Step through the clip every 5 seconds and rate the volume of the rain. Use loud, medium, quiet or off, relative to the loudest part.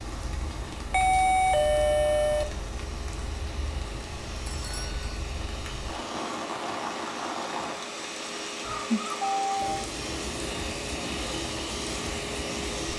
medium, loud, loud.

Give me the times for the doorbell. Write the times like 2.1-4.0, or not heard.
0.9-2.5, 4.5-5.2, 8.6-9.8.